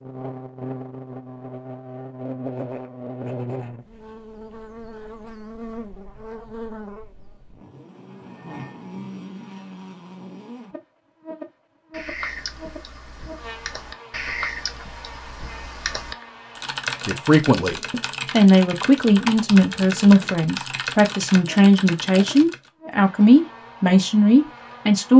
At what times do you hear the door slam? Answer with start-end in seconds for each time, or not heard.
not heard.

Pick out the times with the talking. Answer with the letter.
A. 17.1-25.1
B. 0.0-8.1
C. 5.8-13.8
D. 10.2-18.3
A.